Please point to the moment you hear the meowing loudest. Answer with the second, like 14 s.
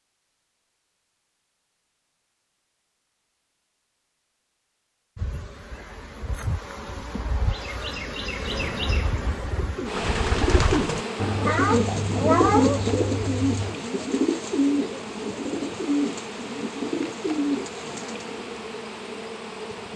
12 s.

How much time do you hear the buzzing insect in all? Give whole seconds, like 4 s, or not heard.
15 s.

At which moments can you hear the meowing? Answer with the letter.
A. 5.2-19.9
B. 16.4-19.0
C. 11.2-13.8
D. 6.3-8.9
C.